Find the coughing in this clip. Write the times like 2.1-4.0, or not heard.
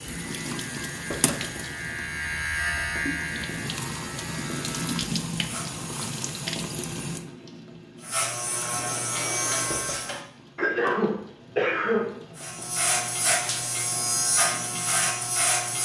3.0-3.7, 10.6-12.2.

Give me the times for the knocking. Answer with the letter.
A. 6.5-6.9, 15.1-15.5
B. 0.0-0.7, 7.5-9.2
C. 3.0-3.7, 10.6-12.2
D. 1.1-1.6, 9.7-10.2
D.